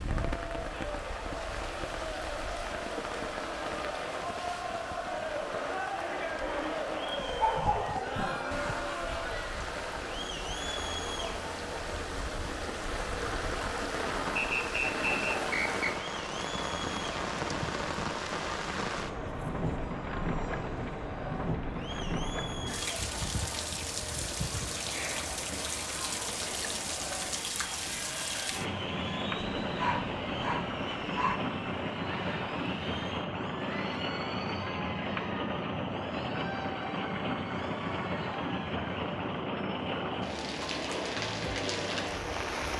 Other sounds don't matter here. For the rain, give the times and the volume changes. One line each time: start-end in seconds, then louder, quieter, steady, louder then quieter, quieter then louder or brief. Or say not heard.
0.0-42.7 louder.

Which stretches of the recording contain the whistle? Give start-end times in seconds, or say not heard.
14.3-15.9.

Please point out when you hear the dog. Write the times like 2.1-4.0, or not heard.
7.2-8.8, 29.6-31.4.